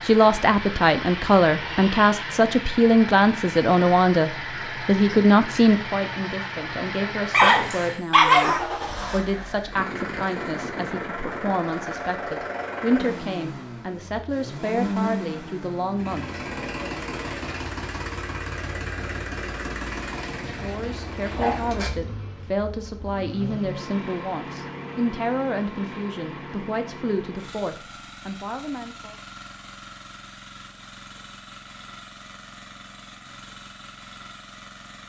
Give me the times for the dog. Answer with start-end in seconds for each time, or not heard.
7.3-8.6, 20.4-21.6.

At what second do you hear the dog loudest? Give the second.
8 s.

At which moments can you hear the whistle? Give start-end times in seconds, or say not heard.
not heard.